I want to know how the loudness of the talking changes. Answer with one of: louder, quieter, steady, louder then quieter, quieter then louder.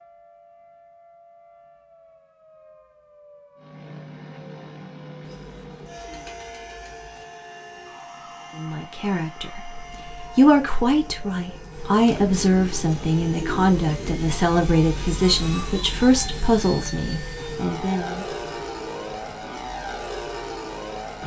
steady.